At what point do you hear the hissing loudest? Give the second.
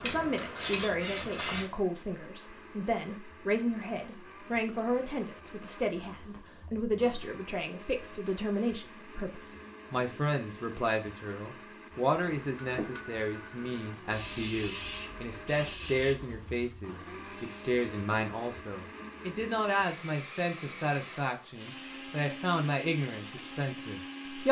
1 s.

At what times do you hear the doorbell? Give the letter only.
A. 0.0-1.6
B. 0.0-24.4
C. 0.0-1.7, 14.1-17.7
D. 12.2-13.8
D.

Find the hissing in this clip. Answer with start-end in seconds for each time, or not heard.
0.0-1.7, 14.1-17.7.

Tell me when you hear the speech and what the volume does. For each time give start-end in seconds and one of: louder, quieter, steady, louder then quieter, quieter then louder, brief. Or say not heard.
0.0-24.4 steady.